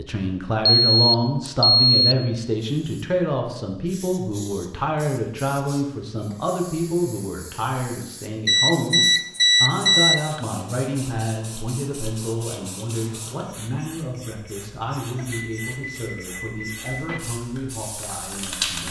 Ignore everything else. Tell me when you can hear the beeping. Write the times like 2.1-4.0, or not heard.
0.7-2.1, 8.4-10.4, 15.2-17.2.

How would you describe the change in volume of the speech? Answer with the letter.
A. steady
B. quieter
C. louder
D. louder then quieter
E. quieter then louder
B.